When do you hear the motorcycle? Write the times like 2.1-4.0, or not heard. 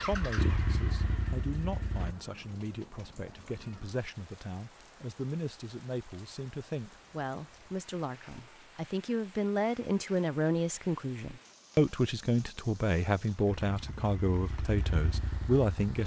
0.0-2.1, 13.6-15.9.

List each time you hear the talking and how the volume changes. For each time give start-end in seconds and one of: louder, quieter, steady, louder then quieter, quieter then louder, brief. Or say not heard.
0.1-16.0 louder.